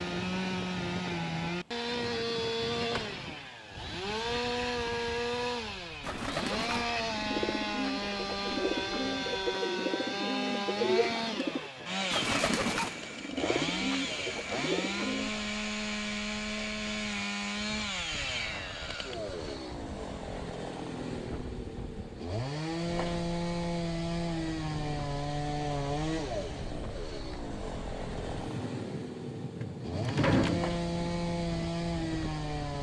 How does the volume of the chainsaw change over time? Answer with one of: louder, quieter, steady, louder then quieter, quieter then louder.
steady.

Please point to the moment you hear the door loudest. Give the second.
30 s.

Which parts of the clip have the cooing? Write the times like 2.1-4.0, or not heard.
6.0-15.3.